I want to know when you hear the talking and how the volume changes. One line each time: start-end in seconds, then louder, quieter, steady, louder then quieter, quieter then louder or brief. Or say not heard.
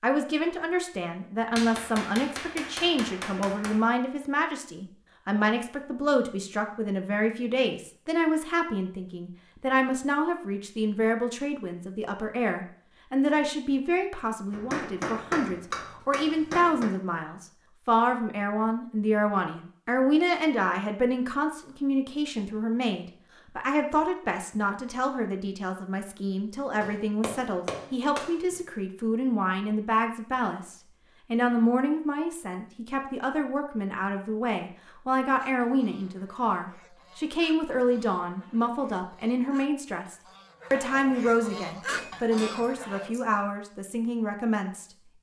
0.0-45.1 steady.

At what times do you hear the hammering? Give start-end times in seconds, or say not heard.
1.6-3.8, 14.5-16.9, 26.8-28.6, 41.7-43.2.